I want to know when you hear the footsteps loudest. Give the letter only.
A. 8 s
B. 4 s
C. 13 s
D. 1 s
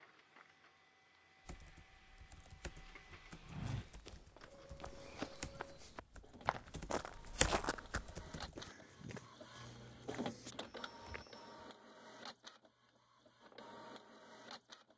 A.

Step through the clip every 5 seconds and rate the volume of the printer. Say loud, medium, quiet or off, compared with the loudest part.
medium, medium, loud.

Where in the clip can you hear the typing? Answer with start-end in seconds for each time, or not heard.
1.4-8.7.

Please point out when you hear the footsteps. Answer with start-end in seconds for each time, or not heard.
3.5-11.7.